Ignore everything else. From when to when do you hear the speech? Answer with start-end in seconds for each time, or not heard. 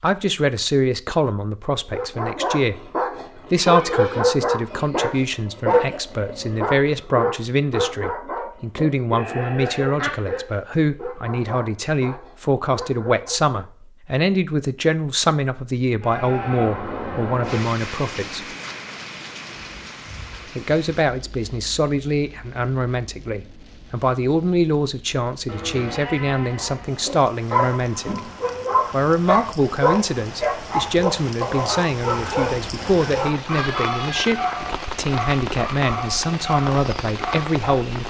0.0-18.4, 20.6-28.2, 28.9-38.0.